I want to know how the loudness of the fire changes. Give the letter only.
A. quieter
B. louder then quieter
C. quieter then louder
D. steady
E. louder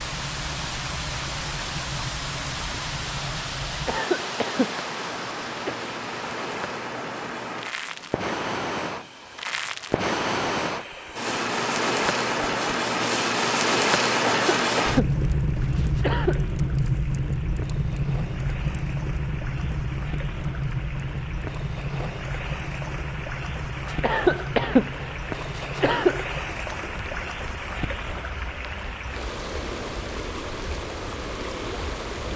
B.